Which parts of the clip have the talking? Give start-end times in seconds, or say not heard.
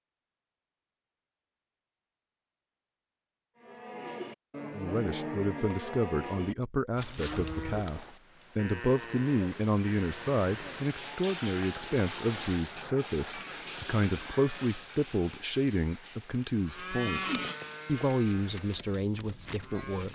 4.7-20.1.